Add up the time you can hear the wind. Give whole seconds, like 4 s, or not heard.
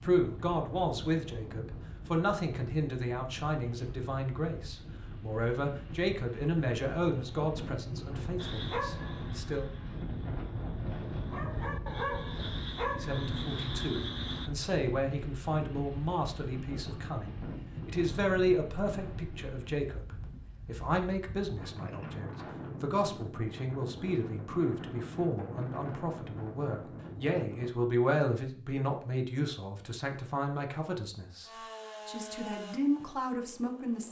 28 s.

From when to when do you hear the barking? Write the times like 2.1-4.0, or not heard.
8.3-14.5.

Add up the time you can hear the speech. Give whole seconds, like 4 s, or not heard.
31 s.